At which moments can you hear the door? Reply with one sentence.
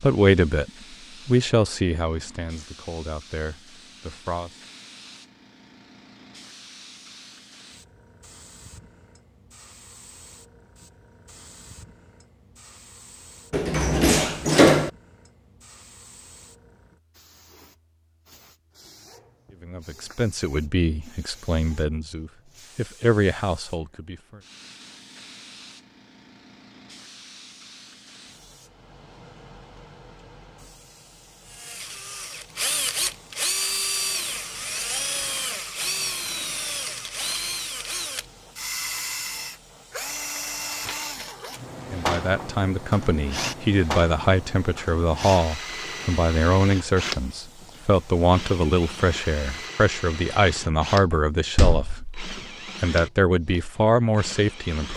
The door can be heard from 13.5 to 14.9 s and from 51.1 to 52.1 s.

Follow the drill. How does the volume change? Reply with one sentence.
The loudness of the drill goes down.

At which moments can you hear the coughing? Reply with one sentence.
The coughing can't be heard in this clip.